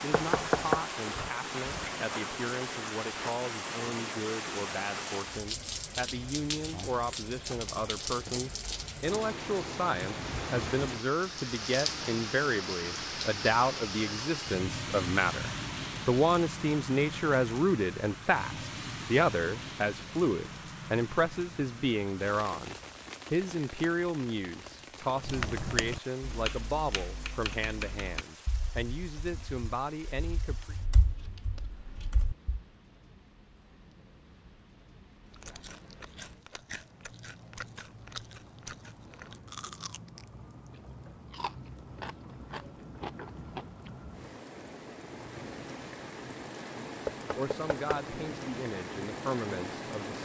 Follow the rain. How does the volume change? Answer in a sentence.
The volume of the rain goes down, then up.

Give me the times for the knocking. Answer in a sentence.
The knocking can be heard from 0.1 to 0.8 s and from 47.0 to 48.0 s.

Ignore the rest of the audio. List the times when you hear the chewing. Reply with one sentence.
The chewing can be heard from 35.2 to 43.9 s.